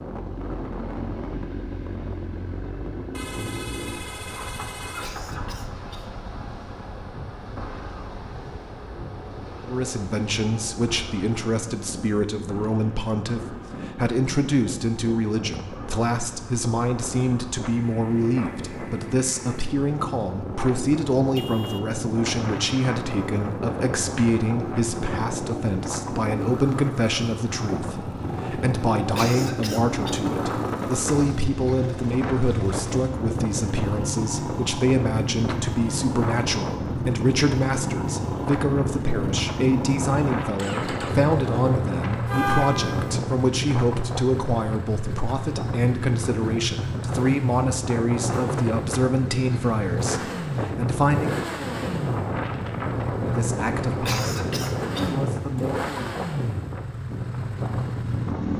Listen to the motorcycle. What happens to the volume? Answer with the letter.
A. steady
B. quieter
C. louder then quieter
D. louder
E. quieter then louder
D.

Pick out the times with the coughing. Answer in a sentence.
You can hear the coughing from 5.0 to 6.2 s, from 29.1 to 30.2 s and from 54.0 to 55.2 s.